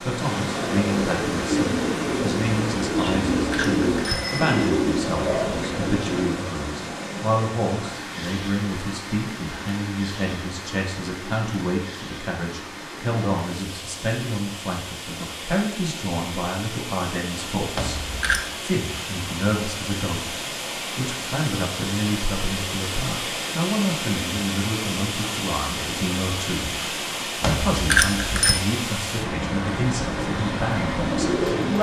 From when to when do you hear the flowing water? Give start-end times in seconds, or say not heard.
0.0-31.7.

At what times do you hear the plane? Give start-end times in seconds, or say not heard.
not heard.